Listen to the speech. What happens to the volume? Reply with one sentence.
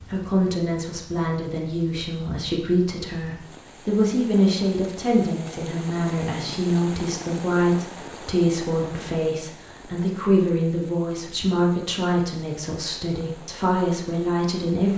The loudness of the speech stays about the same.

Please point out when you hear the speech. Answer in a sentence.
The speech can be heard from 0.0 to 14.9 s.